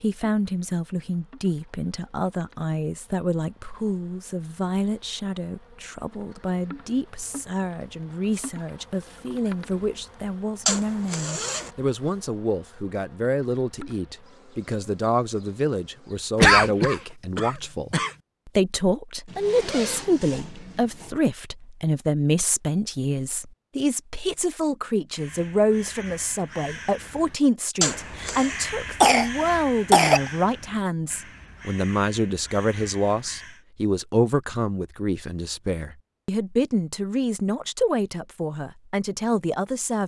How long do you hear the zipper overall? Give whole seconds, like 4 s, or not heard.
4 s.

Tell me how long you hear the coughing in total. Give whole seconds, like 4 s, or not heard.
3 s.